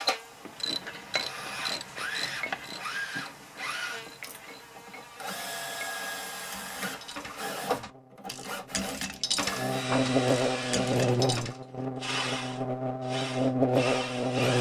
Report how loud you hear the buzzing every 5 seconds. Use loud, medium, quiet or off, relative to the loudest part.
quiet, quiet, loud.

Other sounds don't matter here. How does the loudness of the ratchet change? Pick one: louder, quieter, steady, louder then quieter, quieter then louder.
quieter then louder.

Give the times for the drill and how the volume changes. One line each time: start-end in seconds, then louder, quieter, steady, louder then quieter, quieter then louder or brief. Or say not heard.
0.0-14.5 steady.